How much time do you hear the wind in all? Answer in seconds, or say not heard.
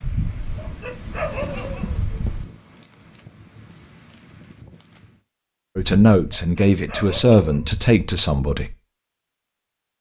5 s.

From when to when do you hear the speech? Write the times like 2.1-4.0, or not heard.
5.8-8.8.